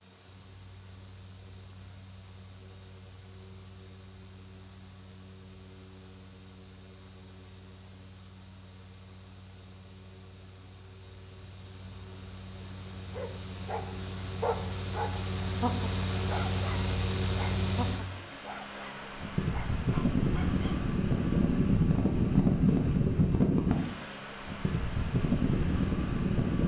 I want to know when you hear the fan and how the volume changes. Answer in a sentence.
You can hear the fan from 0.0 to 26.6 s, getting louder.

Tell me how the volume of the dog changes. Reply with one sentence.
The loudness of the dog goes down.